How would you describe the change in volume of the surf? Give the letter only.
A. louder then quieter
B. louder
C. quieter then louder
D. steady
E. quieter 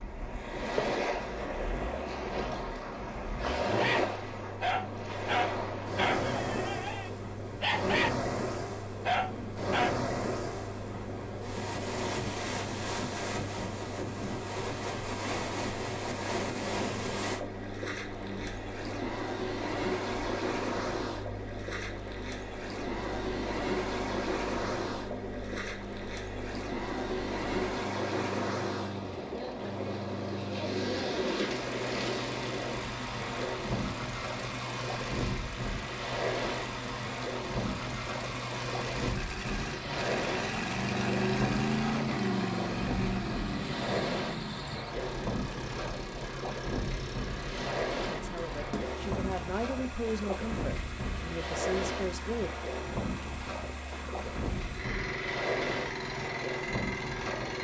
D.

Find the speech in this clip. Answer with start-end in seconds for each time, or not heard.
48.0-52.5.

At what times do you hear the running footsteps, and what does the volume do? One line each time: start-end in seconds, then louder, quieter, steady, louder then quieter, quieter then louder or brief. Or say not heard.
not heard.